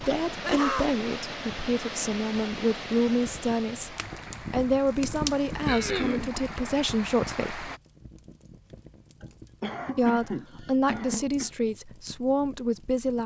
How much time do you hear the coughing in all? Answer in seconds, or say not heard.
4 s.